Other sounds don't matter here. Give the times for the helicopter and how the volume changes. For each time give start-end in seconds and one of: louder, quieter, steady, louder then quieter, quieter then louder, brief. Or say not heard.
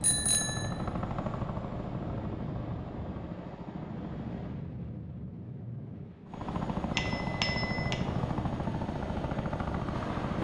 0.0-4.7 quieter
6.2-10.3 steady.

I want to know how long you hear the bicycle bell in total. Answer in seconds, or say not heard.
2 s.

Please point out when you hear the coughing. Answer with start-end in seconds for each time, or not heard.
not heard.